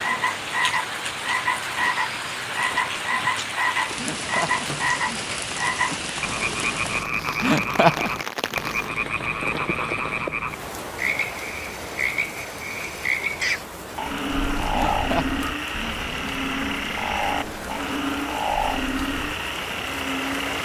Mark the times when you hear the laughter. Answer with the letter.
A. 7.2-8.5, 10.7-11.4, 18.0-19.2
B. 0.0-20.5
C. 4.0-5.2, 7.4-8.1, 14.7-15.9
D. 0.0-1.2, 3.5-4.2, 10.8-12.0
C.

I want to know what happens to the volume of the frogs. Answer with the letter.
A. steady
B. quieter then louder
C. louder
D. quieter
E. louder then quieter
A.